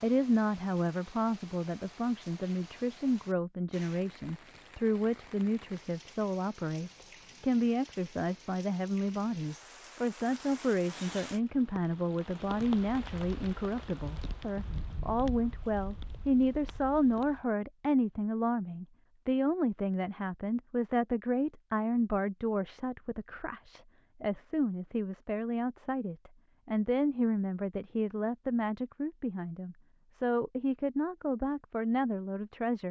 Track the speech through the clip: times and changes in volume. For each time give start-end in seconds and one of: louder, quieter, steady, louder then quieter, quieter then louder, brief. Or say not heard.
0.0-32.8 steady.